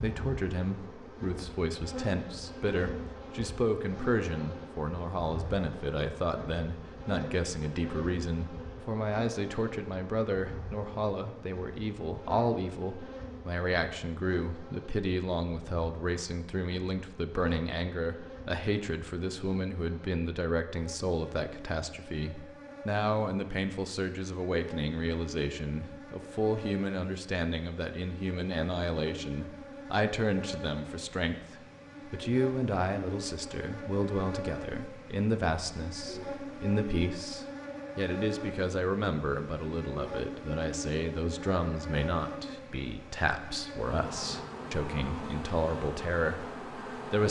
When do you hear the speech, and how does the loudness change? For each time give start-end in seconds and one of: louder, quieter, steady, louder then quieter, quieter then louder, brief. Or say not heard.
0.0-47.2 steady.